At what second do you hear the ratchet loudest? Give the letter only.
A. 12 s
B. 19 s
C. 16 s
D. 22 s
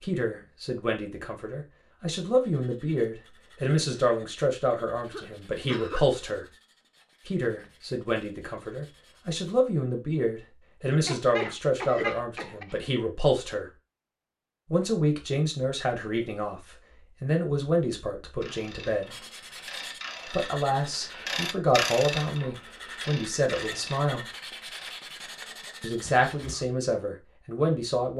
D.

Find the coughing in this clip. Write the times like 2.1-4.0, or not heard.
5.0-6.0, 10.9-12.8, 26.0-26.6.